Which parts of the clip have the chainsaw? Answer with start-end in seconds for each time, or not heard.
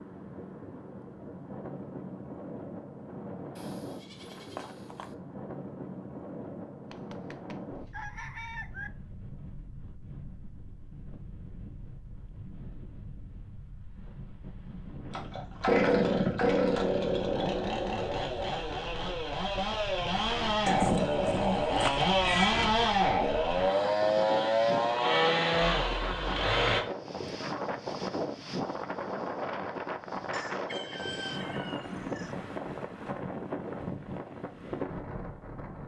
15.1-26.8.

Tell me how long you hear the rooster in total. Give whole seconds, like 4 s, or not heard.
4 s.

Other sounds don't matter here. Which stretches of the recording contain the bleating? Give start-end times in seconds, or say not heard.
3.5-5.2, 20.6-22.6.